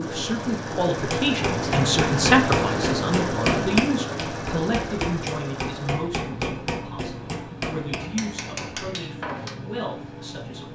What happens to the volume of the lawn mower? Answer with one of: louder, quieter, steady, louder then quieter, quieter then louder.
quieter.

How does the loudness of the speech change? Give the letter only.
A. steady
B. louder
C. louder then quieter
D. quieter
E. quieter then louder
D.